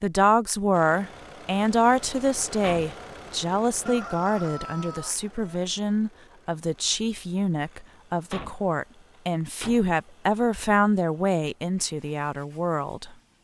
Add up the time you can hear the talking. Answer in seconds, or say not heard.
13 s.